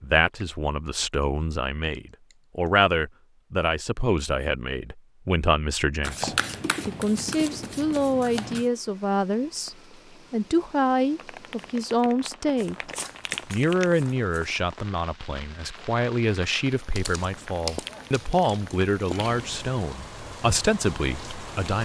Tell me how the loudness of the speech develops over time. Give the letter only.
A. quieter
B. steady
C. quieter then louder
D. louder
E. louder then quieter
B.